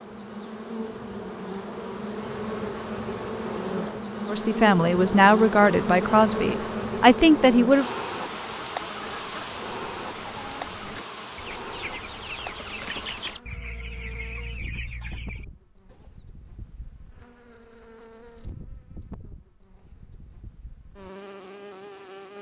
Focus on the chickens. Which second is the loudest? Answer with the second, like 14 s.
13 s.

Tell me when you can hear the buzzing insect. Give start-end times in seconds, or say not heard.
0.0-22.3.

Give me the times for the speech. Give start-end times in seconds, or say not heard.
4.2-7.9.